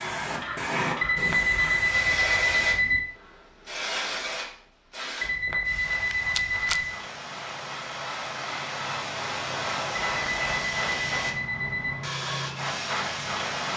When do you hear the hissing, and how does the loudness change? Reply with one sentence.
The hissing can be heard from 0.0 to 13.7 s, getting quieter then louder.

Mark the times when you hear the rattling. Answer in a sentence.
You can hear the rattling from 5.9 to 6.8 s.